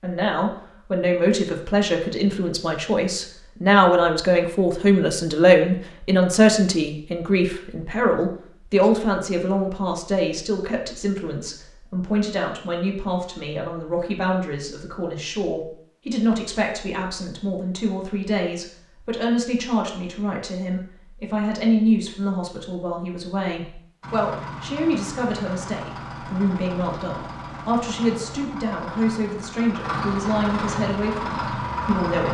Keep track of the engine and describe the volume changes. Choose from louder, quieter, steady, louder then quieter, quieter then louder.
louder.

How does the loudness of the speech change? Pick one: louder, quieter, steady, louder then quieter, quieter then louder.
quieter.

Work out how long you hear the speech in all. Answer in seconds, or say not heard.
32 s.